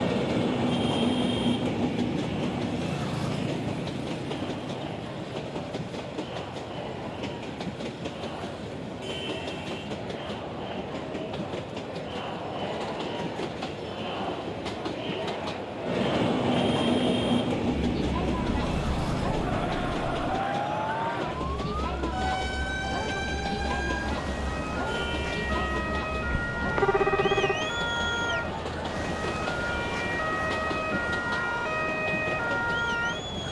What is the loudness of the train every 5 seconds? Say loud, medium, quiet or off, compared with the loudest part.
loud, medium, medium, loud, medium, medium, medium.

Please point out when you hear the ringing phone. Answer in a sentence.
You can hear the ringing phone from 26.3 to 27.6 s.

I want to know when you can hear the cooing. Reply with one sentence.
You can't hear the cooing here.